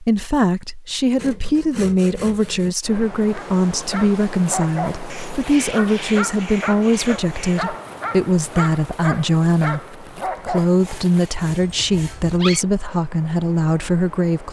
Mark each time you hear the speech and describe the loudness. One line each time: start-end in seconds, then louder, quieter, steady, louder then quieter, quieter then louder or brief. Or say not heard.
0.0-14.4 steady.